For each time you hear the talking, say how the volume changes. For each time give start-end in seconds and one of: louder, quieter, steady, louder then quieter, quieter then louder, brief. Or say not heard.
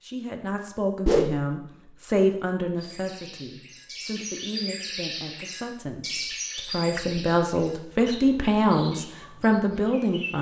0.0-10.3 quieter then louder.